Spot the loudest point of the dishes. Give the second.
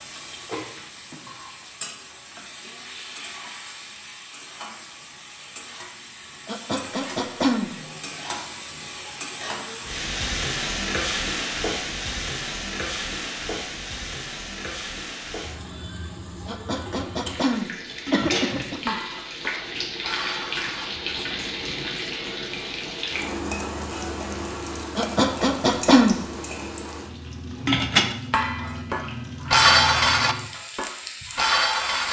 30 s.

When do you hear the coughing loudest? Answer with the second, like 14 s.
26 s.